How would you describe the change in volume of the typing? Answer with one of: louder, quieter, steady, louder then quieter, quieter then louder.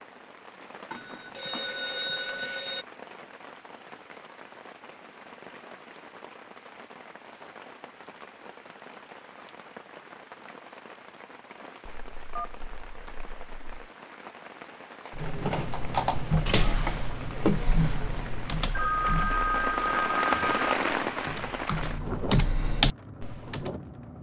quieter then louder.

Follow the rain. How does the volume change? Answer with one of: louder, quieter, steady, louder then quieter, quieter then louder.
louder.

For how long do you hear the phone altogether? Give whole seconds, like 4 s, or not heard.
6 s.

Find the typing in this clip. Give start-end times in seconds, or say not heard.
15.2-23.7.